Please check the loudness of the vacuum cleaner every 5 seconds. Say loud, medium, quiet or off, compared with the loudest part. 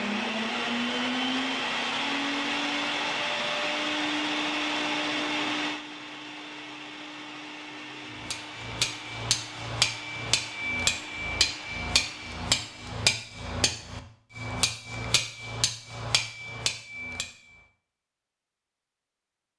loud, medium, quiet, off.